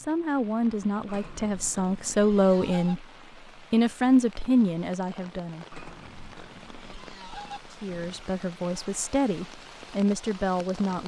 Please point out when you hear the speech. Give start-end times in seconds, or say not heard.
0.0-3.0, 3.7-5.7, 7.7-11.0.